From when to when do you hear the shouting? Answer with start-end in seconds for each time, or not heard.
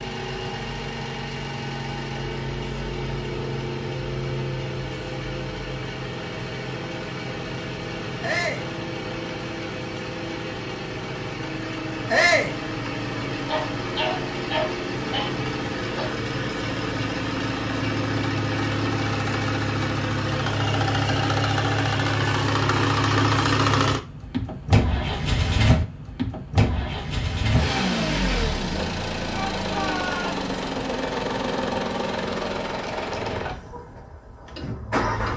8.2-8.7, 12.1-12.6, 29.3-30.4.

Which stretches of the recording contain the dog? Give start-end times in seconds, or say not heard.
13.3-16.1.